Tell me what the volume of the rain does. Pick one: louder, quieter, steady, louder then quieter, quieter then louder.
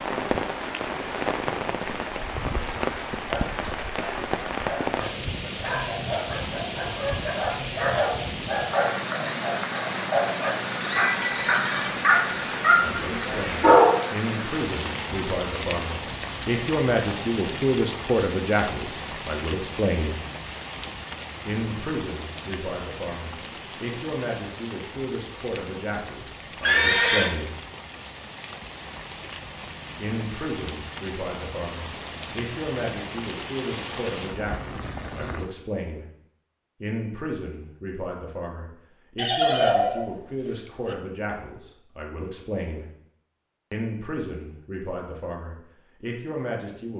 quieter.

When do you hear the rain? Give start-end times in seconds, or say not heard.
0.0-35.5.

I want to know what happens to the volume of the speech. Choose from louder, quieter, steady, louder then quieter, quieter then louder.
quieter.